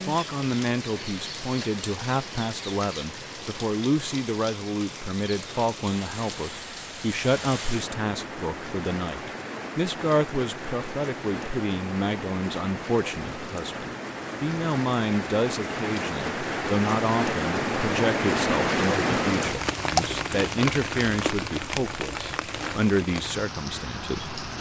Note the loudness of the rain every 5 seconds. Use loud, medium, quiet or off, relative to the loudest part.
medium, medium, medium, loud, medium.